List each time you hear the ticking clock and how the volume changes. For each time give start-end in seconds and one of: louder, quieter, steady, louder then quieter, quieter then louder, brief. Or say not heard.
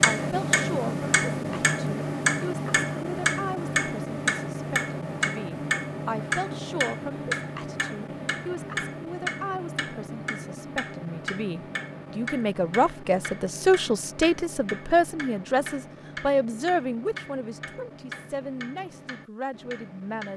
0.0-20.3 quieter.